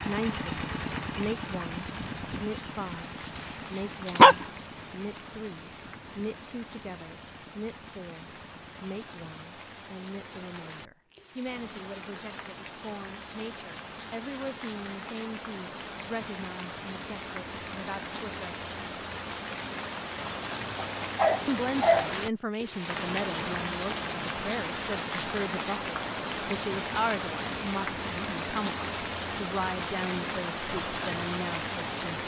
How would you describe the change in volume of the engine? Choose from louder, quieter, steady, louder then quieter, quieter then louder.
quieter.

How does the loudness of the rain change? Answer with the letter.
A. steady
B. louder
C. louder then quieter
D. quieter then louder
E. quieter
B.